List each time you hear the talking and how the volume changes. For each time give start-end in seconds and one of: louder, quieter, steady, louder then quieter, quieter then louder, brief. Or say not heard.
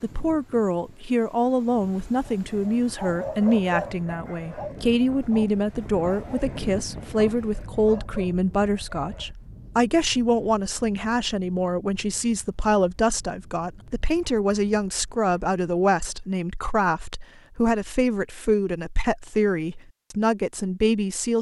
0.0-21.3 steady.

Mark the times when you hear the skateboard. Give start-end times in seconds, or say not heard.
not heard.